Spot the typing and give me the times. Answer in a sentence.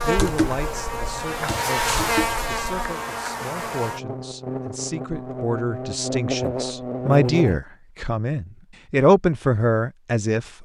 The typing can be heard from 0.0 to 2.9 s.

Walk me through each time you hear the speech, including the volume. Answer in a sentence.
You can hear the speech from 0.0 to 10.5 s, getting louder.